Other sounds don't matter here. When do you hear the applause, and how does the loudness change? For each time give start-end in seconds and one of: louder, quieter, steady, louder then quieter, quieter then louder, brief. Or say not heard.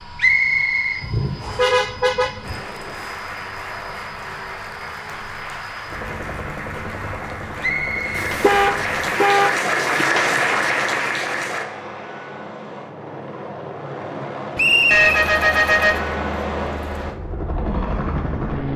2.4-11.7 louder.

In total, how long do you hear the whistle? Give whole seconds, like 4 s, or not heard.
3 s.